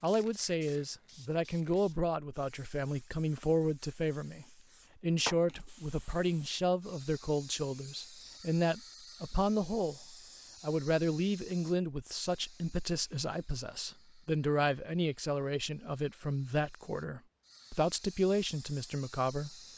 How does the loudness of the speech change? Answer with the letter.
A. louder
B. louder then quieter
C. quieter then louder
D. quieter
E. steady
E.